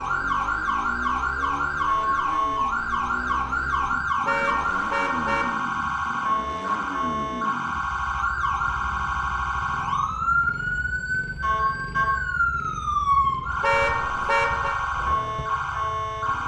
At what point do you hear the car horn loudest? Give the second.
14 s.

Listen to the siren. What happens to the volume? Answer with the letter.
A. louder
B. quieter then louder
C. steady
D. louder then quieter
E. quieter
C.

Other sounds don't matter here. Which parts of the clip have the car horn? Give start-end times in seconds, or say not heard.
4.2-5.5, 13.6-14.8.